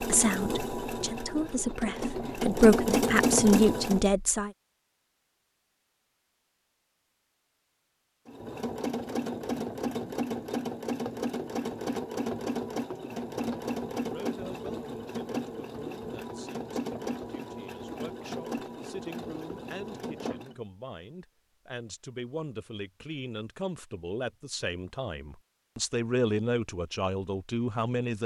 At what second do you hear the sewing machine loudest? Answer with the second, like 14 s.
3 s.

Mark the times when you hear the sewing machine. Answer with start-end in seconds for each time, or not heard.
0.0-4.1, 8.2-20.6.